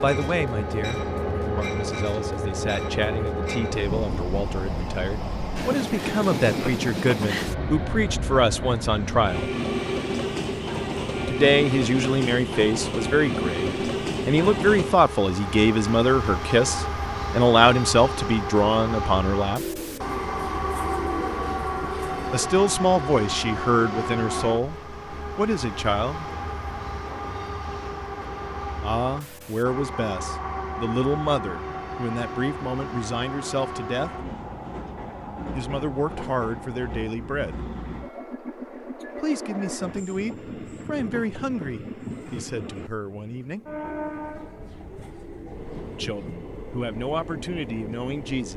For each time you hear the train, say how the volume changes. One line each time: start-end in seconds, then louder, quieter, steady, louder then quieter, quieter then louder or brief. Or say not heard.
0.0-48.5 quieter.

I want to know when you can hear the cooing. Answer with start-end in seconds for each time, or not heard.
19.6-22.5, 43.8-46.4.